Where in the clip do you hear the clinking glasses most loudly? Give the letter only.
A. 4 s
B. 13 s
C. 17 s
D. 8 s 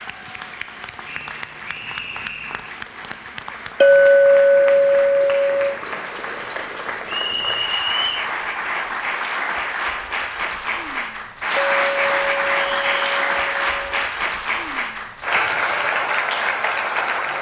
A.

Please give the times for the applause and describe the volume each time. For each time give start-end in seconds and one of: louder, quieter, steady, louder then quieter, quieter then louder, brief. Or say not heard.
0.0-17.3 louder.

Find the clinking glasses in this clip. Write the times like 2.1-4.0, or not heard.
3.8-5.8, 11.6-14.0.